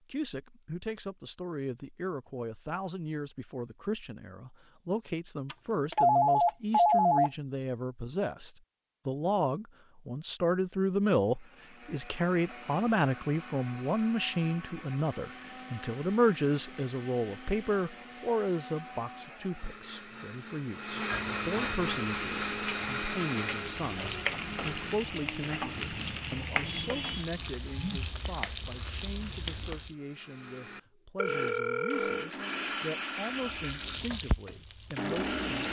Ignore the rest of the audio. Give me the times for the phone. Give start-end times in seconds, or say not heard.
5.5-7.3, 21.1-21.9, 31.1-32.3.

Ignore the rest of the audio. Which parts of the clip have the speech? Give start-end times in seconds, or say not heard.
0.1-35.6.